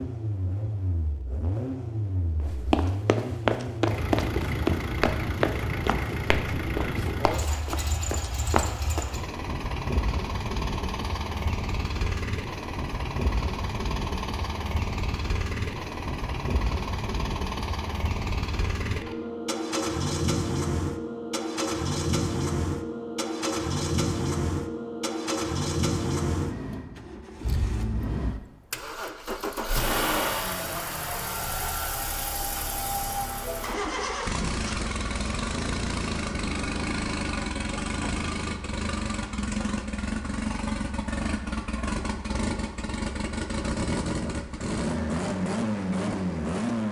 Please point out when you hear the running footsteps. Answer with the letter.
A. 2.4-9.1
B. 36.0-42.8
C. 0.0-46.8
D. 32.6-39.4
A.